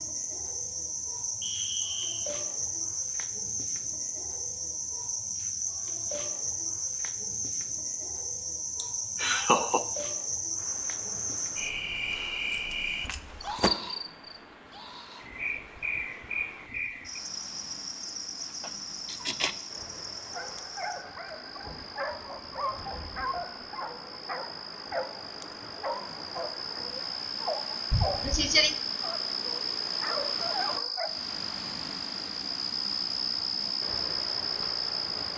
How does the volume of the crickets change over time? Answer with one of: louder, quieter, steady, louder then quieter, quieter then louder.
quieter then louder.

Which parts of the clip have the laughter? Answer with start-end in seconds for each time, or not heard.
8.8-9.8, 18.6-19.6, 27.9-28.8.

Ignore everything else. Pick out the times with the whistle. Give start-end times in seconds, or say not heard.
1.4-2.3.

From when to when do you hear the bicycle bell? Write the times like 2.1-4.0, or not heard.
not heard.